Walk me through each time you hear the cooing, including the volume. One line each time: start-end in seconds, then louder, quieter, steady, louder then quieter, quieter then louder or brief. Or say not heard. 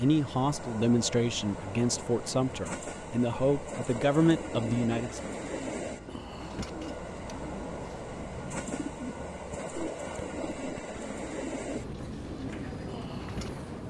4.2-13.6 steady.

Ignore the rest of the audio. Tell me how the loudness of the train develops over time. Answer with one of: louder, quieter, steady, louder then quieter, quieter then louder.
steady.